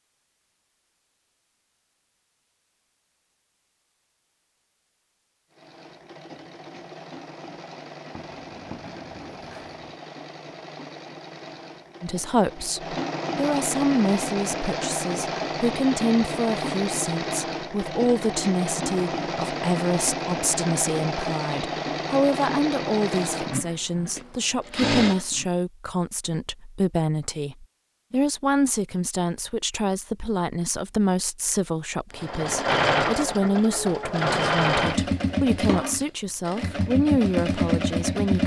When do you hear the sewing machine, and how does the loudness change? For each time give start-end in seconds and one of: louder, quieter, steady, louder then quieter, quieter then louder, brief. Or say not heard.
5.5-25.4 louder
32.1-38.4 quieter then louder.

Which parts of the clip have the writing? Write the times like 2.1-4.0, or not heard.
8.2-9.9.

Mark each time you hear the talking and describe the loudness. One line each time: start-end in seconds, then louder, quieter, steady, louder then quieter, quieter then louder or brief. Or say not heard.
12.0-38.4 steady.